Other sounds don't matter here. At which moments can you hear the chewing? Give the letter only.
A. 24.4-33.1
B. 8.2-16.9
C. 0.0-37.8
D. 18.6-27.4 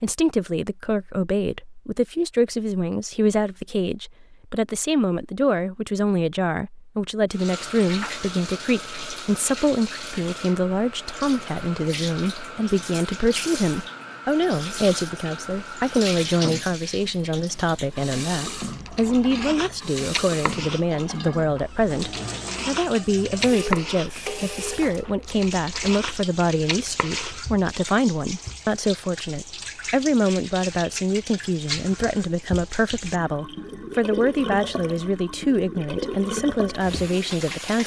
D.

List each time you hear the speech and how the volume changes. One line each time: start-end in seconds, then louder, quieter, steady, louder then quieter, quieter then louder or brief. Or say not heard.
0.0-37.8 steady.